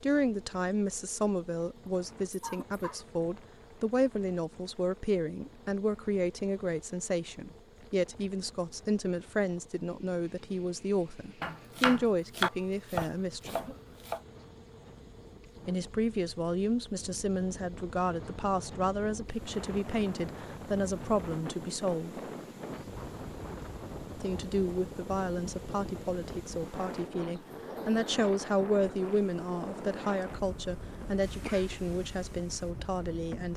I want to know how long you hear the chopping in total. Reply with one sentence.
The chopping can be heard for 3 seconds in total.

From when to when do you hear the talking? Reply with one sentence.
You can hear the talking from 0.0 to 13.8 s, from 15.7 to 22.2 s and from 24.2 to 33.5 s.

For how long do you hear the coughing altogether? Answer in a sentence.
You can hear the coughing for 3 seconds altogether.